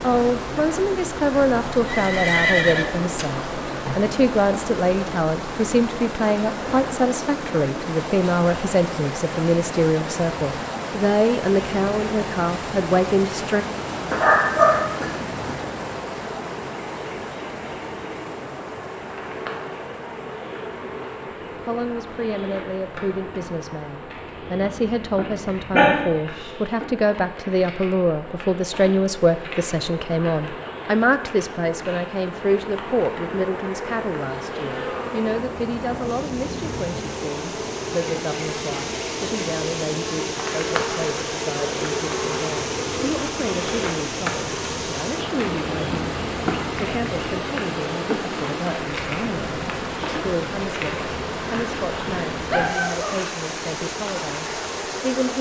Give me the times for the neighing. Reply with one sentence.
You can hear the neighing from 1.9 to 3.5 s.